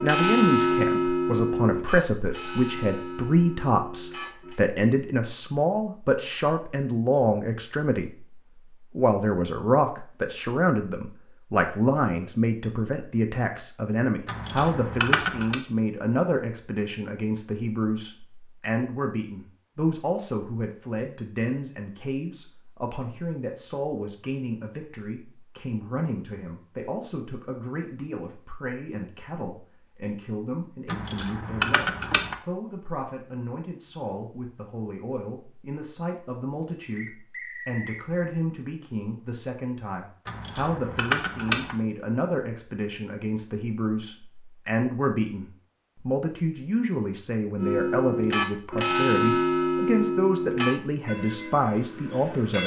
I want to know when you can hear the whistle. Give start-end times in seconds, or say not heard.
37.0-38.0.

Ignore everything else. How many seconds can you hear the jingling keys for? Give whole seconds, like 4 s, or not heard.
4 s.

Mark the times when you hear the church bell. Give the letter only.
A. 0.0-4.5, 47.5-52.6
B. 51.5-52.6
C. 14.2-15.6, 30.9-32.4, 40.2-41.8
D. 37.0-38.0
A.